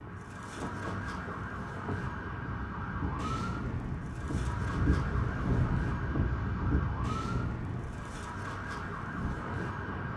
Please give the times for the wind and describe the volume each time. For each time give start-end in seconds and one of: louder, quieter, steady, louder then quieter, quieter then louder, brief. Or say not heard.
0.0-10.1 louder then quieter.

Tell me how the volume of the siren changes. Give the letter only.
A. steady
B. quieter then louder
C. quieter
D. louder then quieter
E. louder
A.